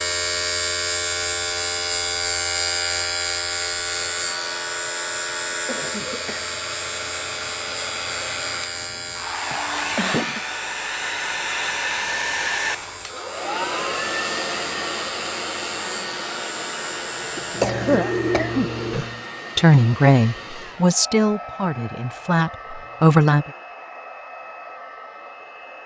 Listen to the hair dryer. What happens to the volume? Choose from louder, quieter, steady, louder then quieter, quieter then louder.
louder then quieter.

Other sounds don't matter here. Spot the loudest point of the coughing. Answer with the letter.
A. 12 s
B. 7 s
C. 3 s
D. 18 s
D.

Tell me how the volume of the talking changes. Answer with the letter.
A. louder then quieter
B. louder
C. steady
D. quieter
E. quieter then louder
E.